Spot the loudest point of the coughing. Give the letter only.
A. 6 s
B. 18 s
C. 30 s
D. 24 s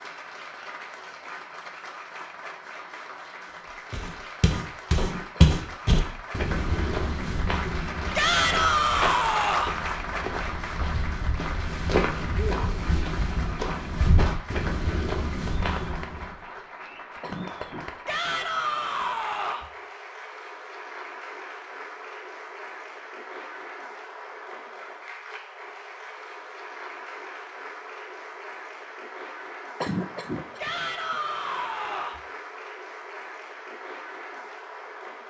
C.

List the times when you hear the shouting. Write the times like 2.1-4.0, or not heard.
8.2-9.8, 18.1-19.7, 30.6-32.2.